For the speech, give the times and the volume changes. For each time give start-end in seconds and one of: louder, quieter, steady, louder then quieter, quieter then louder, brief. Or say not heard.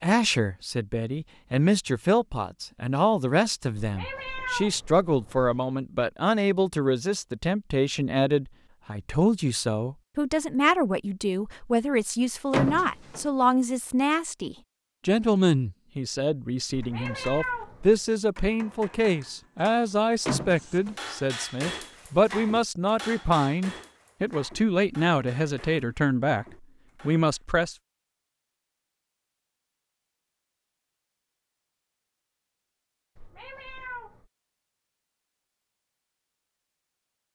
0.0-26.4 steady
27.1-27.8 brief.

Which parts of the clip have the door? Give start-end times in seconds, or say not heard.
12.5-13.2, 20.2-21.0.